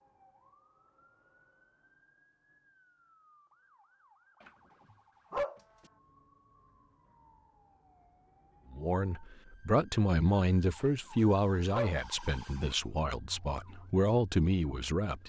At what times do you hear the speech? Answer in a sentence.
The speech can be heard from 8.7 to 15.2 s.